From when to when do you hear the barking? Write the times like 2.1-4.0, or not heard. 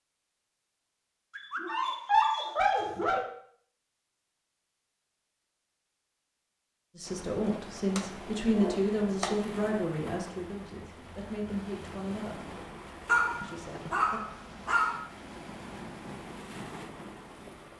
1.4-3.2, 7.5-9.4, 13.1-15.0.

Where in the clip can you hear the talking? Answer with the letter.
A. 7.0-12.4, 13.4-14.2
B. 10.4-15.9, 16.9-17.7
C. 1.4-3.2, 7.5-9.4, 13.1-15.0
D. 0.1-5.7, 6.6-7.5
A.